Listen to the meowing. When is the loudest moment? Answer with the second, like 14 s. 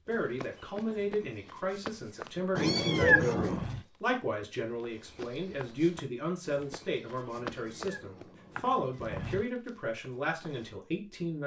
3 s.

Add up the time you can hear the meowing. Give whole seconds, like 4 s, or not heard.
3 s.